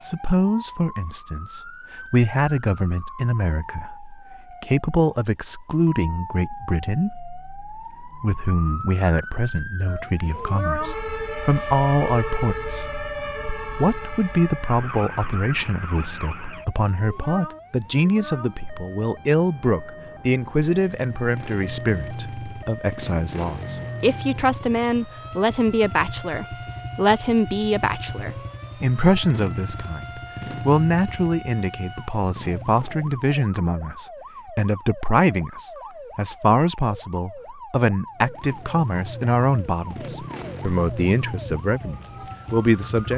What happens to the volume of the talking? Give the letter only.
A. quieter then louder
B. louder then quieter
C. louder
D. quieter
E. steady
E.